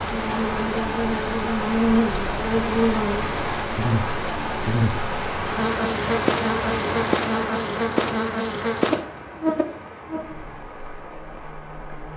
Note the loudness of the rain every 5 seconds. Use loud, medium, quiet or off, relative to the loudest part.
loud, loud, quiet.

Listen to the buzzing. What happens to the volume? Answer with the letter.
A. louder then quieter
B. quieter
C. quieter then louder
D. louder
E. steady
B.